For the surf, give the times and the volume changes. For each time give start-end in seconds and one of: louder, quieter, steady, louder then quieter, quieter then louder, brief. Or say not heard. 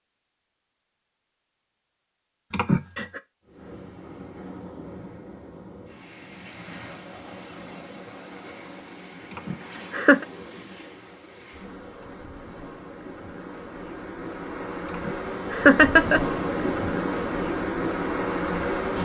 3.5-19.0 louder.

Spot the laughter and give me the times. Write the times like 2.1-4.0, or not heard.
2.5-3.2, 9.3-10.2, 14.8-16.2.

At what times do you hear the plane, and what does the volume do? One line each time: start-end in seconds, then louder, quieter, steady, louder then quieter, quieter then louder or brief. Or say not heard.
not heard.